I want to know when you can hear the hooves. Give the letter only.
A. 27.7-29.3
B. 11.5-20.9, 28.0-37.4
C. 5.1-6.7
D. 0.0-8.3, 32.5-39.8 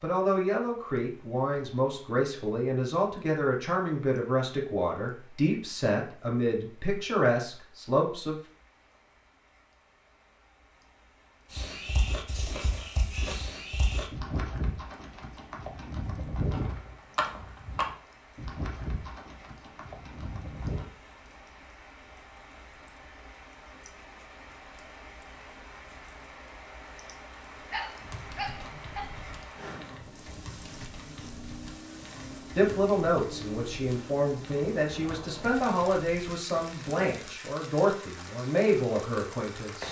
B.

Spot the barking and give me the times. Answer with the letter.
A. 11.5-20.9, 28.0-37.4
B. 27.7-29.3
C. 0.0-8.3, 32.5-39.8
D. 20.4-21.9
B.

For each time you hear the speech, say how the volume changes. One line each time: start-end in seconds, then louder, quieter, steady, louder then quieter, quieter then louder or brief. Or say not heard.
0.0-8.3 steady
32.5-39.8 steady.